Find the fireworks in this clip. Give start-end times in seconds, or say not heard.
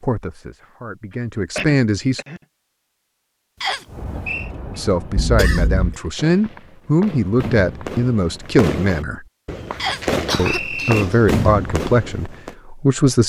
3.9-12.6.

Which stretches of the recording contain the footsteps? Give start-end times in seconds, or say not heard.
not heard.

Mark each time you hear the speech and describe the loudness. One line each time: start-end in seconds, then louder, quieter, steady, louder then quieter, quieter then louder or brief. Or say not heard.
0.0-2.2 brief
4.7-9.2 steady
10.3-13.2 brief.